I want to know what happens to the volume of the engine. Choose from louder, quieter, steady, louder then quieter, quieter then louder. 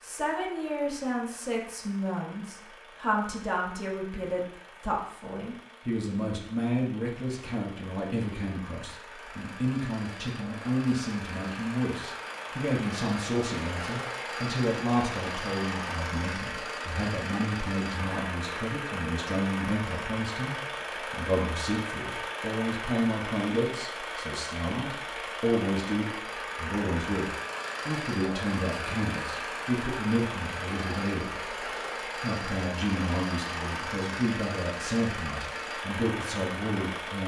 louder.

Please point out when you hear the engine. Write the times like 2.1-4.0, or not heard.
0.0-37.2.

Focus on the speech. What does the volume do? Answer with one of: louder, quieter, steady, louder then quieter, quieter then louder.
steady.